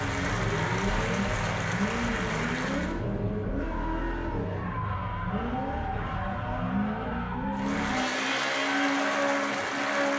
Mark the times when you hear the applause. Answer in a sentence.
The applause can be heard from 0.0 to 3.0 s and from 7.5 to 10.1 s.